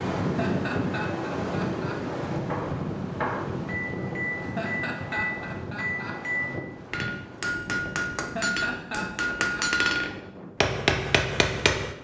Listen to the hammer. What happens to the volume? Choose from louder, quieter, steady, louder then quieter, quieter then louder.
louder.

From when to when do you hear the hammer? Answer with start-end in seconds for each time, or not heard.
2.4-11.9.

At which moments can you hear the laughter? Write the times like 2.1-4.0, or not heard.
0.2-2.1, 4.3-6.3, 8.2-9.8.